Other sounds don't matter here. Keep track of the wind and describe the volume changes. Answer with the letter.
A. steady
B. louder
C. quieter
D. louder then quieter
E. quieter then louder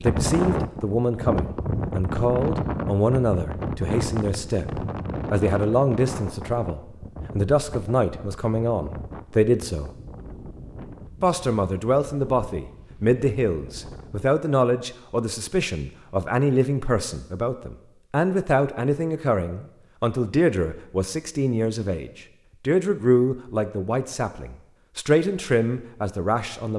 C.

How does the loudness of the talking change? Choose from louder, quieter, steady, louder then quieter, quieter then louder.
steady.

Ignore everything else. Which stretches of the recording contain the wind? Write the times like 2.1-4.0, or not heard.
0.0-14.2.